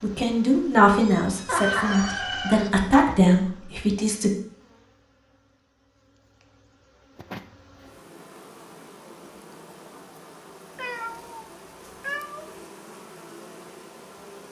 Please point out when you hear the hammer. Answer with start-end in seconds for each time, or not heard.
not heard.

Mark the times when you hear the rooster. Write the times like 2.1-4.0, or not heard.
1.4-2.7.